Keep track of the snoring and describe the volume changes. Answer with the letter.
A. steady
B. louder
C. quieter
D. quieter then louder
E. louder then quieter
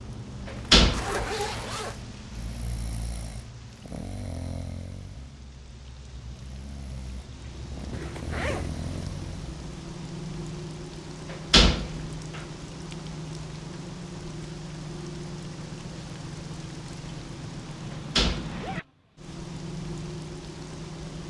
D.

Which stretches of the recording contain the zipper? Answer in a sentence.
You can hear the zipper from 0.8 to 2.0 s, from 7.9 to 8.8 s and from 18.4 to 18.9 s.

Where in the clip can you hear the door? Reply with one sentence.
The door can be heard from 0.5 to 1.2 s, from 11.3 to 12.4 s and from 17.9 to 18.6 s.